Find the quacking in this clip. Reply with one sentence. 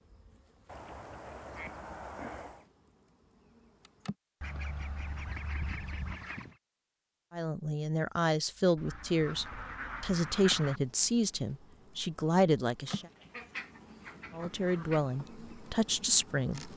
The quacking can be heard from 0.7 to 2.6 s, from 4.4 to 6.5 s, from 8.8 to 10.8 s and from 12.8 to 15.0 s.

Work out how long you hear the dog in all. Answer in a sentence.
The dog can't be heard in this clip.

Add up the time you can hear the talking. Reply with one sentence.
The talking can be heard for 8 seconds in total.